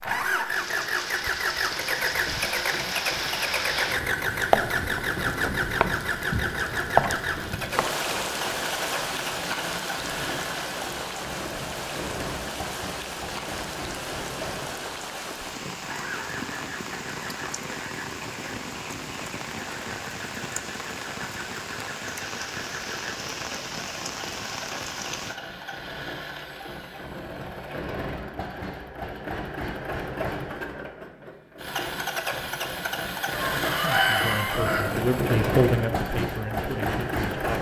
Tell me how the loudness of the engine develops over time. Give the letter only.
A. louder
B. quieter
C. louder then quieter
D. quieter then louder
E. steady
D.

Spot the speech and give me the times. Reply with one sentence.
You can hear the speech from 33.8 to 37.5 s.